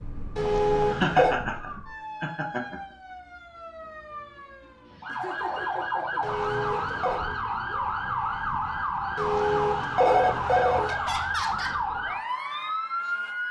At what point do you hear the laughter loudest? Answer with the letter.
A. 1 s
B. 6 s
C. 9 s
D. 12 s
A.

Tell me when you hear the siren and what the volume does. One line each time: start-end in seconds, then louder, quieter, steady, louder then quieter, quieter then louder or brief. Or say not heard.
0.0-13.4 louder.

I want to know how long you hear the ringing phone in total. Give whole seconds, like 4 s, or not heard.
4 s.